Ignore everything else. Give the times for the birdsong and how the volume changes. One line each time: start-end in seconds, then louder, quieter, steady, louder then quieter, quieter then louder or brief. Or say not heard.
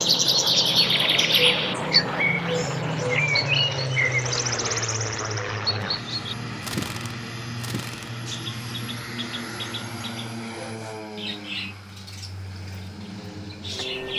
0.0-14.1 quieter.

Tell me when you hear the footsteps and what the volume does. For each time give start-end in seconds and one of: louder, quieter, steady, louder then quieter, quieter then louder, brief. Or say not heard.
not heard.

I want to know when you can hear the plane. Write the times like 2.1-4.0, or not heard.
0.0-14.1.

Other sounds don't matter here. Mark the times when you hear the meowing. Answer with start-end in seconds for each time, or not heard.
not heard.